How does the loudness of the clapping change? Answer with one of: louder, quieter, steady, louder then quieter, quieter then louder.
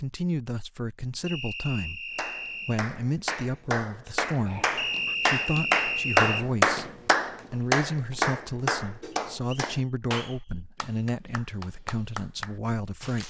louder then quieter.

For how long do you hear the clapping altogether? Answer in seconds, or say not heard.
11 s.